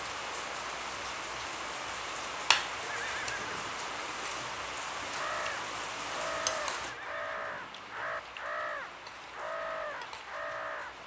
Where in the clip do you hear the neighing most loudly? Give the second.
3 s.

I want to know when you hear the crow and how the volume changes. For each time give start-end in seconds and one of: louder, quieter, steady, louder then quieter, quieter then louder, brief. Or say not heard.
5.1-10.9 steady.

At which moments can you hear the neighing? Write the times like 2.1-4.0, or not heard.
2.8-3.7, 6.8-8.1.